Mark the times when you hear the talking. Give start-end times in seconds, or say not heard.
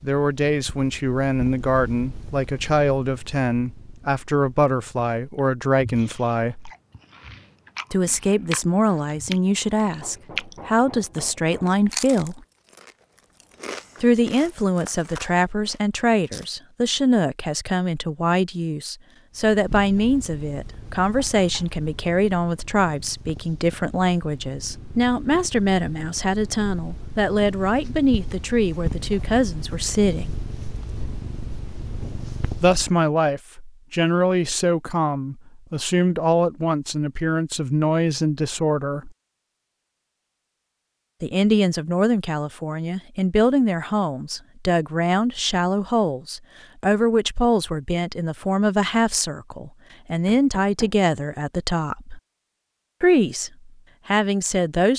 0.0-6.7, 7.9-12.4, 14.0-30.4, 32.6-39.1, 41.2-52.2, 53.0-54.9.